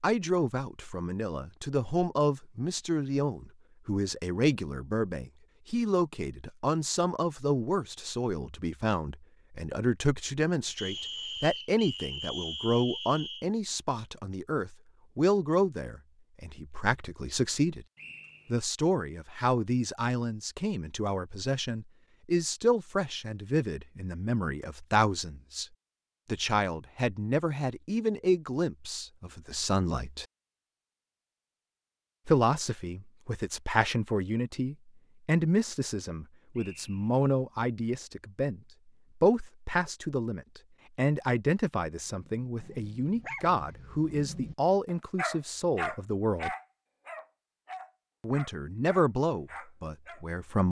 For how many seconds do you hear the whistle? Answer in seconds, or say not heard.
4 s.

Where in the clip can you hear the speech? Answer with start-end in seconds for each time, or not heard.
0.0-17.9, 18.5-25.6, 26.2-30.2, 32.2-38.6, 39.2-46.5, 48.2-50.6.